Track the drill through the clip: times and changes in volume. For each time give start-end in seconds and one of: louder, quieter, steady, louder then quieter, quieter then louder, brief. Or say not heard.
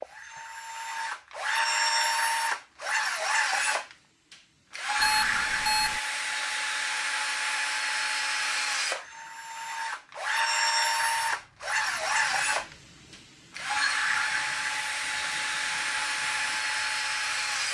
0.0-17.7 steady.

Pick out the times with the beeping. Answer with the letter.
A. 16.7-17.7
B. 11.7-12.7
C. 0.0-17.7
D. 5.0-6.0
D.